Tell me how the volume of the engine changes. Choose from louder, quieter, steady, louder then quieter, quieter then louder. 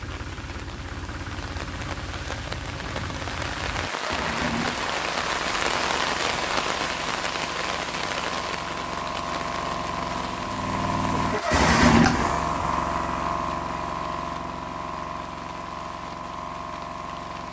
louder then quieter.